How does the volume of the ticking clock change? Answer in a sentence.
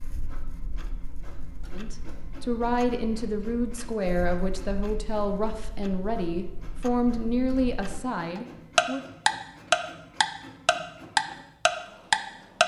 The loudness of the ticking clock goes up.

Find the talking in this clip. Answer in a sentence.
The talking can be heard from 1.7 to 9.1 s.